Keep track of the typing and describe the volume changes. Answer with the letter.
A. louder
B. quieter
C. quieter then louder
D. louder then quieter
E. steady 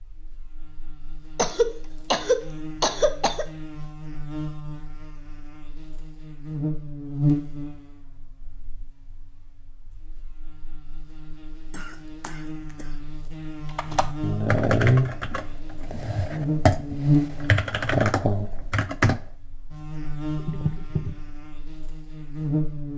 C.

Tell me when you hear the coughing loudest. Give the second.
2 s.